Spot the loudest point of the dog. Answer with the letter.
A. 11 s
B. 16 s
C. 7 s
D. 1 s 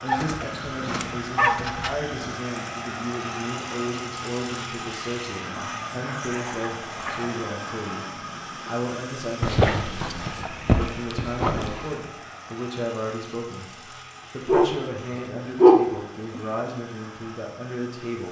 B.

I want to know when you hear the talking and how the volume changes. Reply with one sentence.
You can hear the talking from 0.0 to 18.2 s, at a steady volume.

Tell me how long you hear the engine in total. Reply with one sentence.
The engine can be heard for 18 seconds in total.